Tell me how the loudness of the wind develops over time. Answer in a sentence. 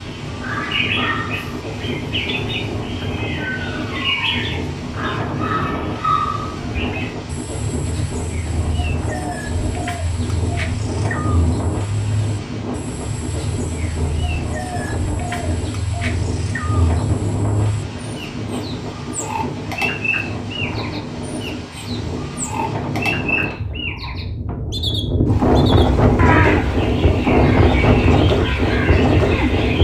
The loudness of the wind goes up.